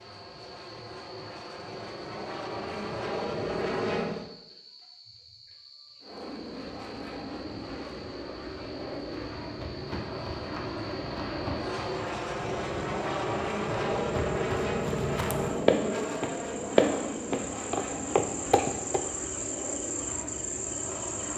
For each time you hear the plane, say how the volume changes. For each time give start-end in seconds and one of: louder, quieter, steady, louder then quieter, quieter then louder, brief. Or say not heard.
0.0-4.2 louder
6.0-21.3 louder then quieter.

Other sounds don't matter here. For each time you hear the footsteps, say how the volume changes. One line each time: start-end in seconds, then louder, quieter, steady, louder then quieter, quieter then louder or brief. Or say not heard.
8.9-19.0 louder.